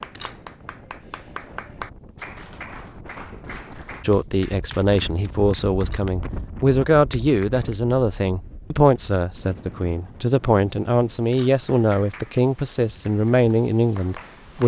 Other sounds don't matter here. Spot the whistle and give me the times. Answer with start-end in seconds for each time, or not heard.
not heard.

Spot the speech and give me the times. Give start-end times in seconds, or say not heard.
4.0-14.6.